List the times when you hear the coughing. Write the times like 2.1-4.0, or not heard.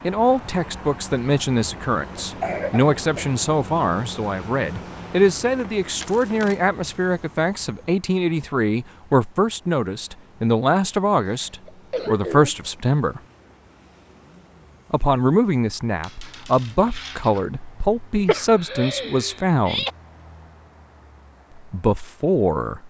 2.2-3.4, 11.2-12.7, 18.2-19.9.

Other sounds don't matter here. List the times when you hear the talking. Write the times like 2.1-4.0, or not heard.
0.0-13.2, 14.9-19.9, 21.6-22.8.